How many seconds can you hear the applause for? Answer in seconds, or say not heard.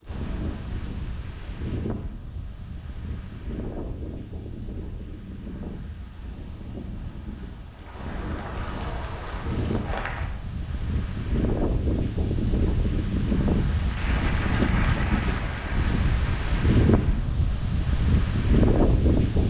6 s.